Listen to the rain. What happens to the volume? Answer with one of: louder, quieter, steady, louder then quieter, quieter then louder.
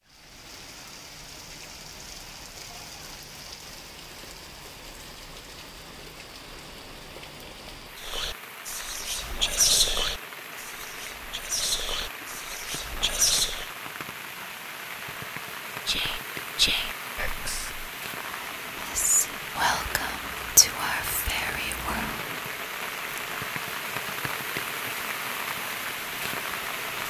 louder.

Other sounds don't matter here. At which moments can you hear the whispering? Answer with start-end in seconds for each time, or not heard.
8.0-13.7, 15.8-22.2.